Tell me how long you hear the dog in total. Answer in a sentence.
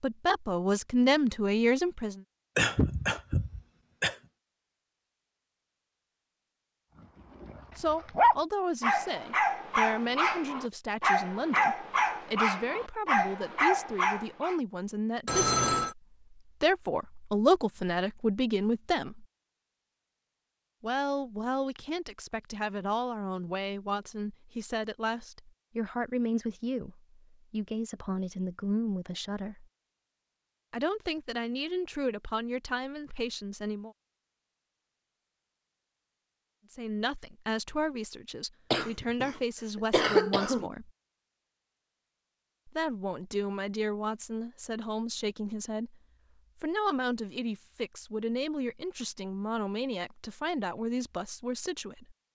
The dog can be heard for 7 seconds in total.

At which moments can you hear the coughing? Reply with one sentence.
You can hear the coughing from 2.5 to 4.2 s and from 38.7 to 40.7 s.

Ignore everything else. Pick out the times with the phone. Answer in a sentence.
You can hear the phone from 15.2 to 15.9 s.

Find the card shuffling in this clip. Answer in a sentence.
The card shuffling can't be heard in this clip.